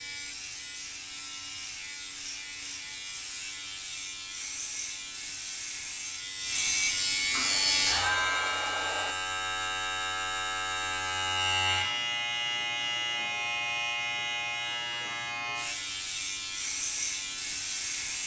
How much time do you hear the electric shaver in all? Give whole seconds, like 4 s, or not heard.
18 s.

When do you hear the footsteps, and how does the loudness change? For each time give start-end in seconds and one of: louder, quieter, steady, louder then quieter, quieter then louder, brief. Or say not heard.
not heard.